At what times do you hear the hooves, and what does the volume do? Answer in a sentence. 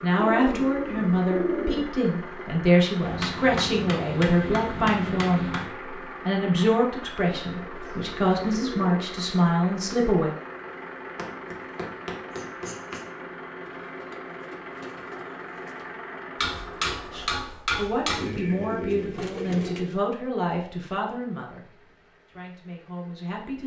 You can't hear the hooves here.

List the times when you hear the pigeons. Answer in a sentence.
The pigeons can be heard from 0.1 to 2.5 s, from 7.2 to 9.2 s, from 13.6 to 15.9 s and from 18.1 to 19.9 s.